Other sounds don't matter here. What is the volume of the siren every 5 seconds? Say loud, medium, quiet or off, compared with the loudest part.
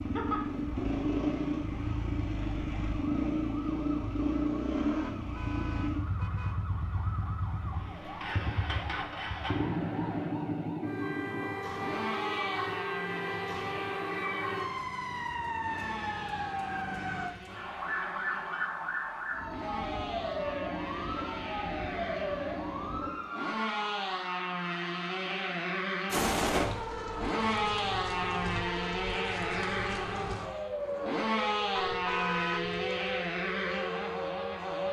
quiet, medium, loud, loud, loud, loud, loud.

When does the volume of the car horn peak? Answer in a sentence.
The loudest moment of the car horn is at 32 seconds.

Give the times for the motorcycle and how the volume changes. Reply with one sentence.
The motorcycle can be heard from 0.0 to 34.8 s, getting quieter then louder.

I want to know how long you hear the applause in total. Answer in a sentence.
You can't hear the applause here.